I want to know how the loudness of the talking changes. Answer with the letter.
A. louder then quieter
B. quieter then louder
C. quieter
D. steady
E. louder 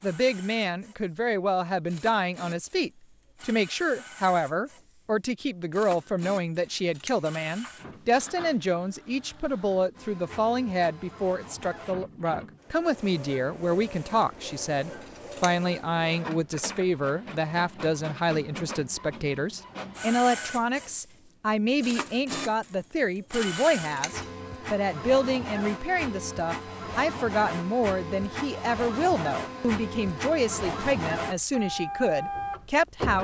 D.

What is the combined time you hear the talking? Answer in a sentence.
You can hear the talking for 33 seconds altogether.